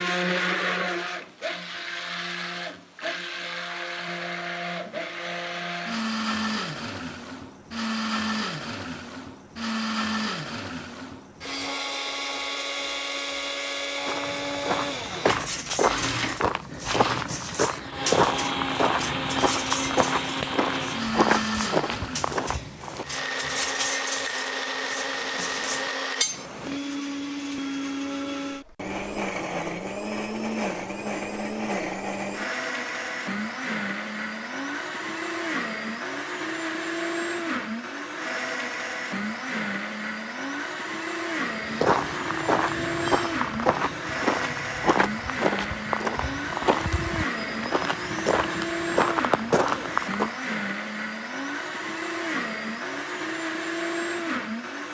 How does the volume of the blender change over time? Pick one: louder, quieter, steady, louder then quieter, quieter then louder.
steady.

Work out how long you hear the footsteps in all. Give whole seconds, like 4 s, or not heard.
18 s.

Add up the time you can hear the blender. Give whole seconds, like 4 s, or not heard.
55 s.